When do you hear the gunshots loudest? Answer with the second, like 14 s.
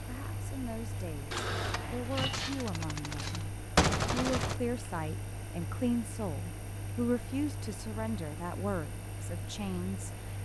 4 s.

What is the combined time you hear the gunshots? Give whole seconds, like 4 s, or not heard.
3 s.